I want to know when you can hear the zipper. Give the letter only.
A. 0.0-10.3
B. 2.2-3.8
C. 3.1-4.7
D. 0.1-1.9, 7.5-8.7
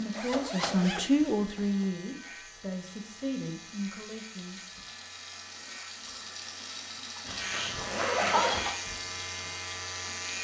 D.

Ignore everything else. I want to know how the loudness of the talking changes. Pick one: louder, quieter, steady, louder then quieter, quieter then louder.
quieter.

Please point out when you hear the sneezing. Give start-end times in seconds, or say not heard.
7.2-8.8.